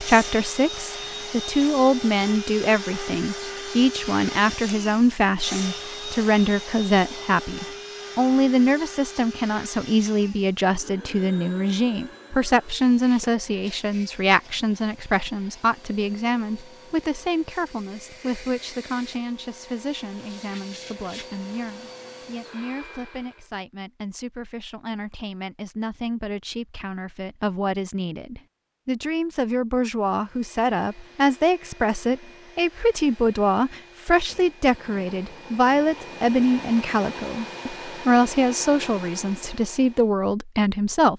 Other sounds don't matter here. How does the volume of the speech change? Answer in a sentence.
The loudness of the speech goes down, then up.